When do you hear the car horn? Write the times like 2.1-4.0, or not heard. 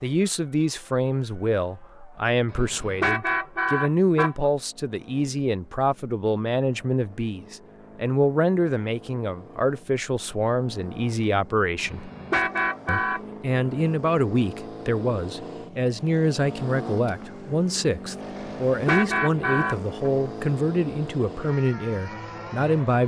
2.5-4.5, 11.8-13.2, 18.4-20.1.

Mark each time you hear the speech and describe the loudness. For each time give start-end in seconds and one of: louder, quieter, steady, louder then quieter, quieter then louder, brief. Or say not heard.
0.0-12.1 steady
12.8-23.0 steady.